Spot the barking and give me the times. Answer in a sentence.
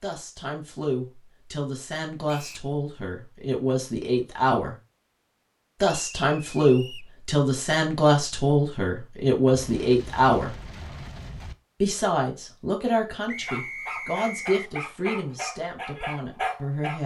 The barking can be heard from 13.4 to 17.0 s.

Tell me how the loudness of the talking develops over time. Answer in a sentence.
The loudness of the talking goes up, then down.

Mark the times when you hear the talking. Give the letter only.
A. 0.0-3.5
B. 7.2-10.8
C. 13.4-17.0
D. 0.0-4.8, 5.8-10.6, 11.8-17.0
D.